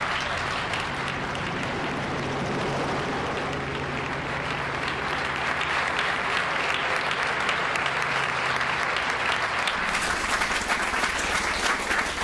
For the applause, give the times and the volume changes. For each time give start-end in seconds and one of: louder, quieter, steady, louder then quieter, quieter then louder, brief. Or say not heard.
0.0-12.2 louder.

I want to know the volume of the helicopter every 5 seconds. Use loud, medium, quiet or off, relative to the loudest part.
loud, medium, medium.